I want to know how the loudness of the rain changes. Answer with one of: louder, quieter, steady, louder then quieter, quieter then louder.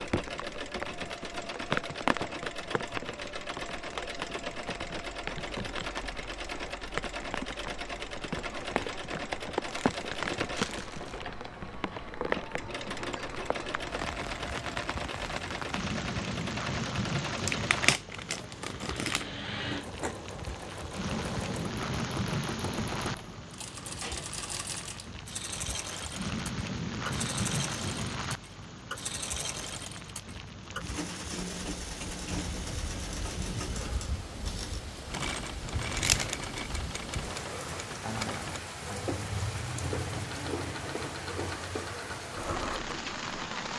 steady.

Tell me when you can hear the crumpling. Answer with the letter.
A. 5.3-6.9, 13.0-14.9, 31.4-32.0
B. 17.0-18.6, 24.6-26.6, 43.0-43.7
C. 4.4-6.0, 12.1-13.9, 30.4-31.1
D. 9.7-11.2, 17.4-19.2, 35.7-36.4
D.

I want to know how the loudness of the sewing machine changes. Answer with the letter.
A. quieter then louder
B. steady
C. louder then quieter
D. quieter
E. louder
B.